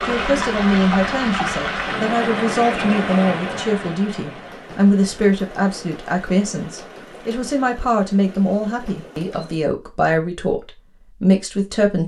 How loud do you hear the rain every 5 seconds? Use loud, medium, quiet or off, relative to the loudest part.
loud, quiet, off.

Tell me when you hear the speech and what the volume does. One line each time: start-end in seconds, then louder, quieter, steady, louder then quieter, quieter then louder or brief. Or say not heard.
0.1-12.0 steady.